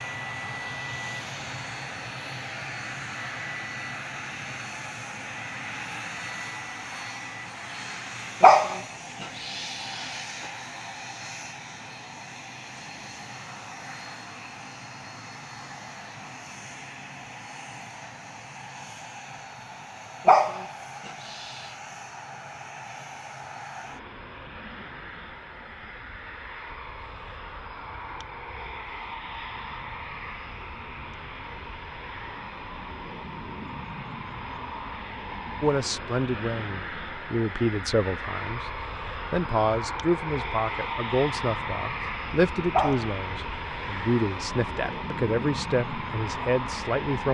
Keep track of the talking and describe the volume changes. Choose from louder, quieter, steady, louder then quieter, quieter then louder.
steady.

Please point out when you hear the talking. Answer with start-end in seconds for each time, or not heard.
35.6-47.3.